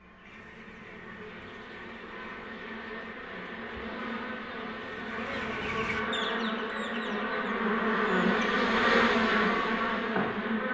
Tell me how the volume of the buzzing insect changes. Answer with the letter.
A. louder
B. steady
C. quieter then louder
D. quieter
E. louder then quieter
A.